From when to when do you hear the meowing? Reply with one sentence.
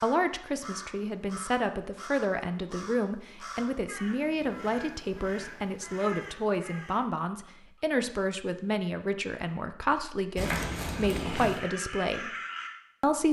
The meowing can be heard from 10.3 to 11.7 s.